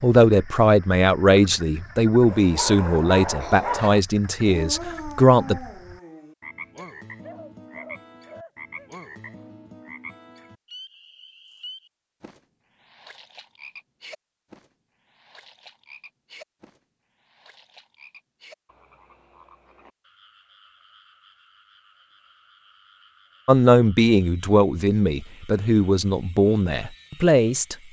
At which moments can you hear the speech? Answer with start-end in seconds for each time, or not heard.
0.0-5.6, 23.4-27.8.